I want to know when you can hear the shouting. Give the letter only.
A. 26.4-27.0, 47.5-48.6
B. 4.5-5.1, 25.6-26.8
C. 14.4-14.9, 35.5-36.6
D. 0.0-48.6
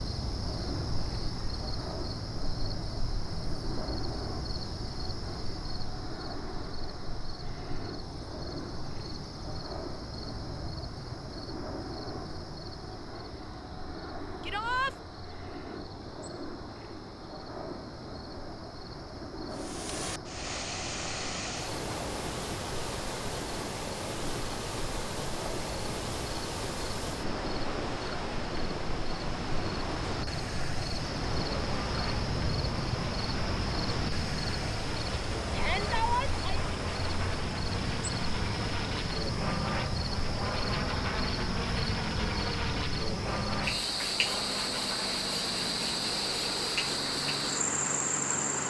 C.